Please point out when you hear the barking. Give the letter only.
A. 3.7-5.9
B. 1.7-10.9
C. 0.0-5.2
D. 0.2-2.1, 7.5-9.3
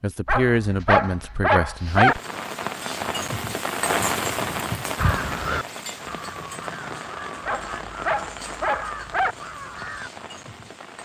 D.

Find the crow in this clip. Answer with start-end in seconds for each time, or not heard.
5.0-10.1.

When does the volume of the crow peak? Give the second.
5 s.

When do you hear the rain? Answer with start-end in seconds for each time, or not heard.
1.7-10.9.